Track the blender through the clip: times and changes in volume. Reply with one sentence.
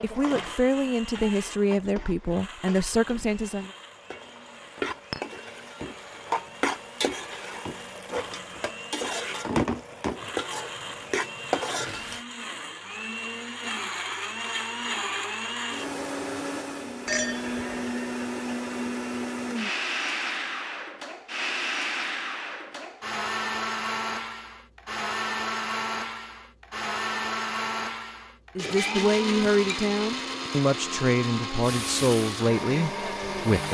You can hear the blender from 0.2 to 33.6 s, getting louder.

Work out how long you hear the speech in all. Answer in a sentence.
The speech can be heard for 9 seconds in total.